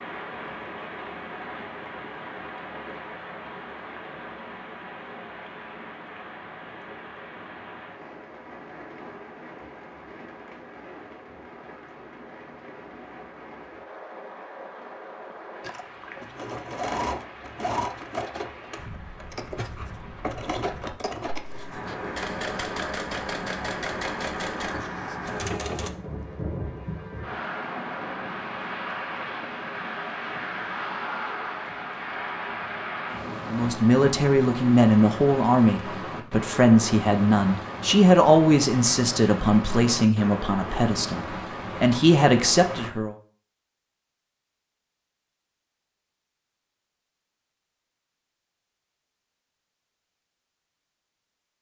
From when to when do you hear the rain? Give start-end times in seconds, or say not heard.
0.0-42.9.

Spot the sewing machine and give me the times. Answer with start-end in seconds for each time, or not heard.
15.6-25.9.